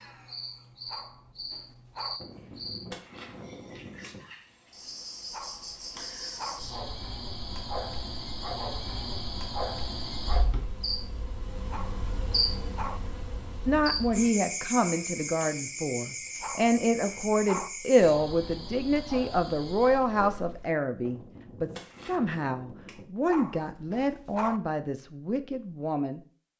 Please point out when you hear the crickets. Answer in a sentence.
The crickets can be heard from 0.0 to 20.7 s.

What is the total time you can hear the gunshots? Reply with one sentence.
You can hear the gunshots for 4 seconds altogether.